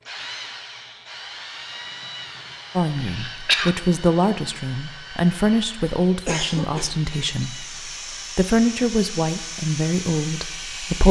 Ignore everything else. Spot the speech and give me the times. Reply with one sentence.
You can hear the speech from 2.8 to 7.8 s and from 8.3 to 11.0 s.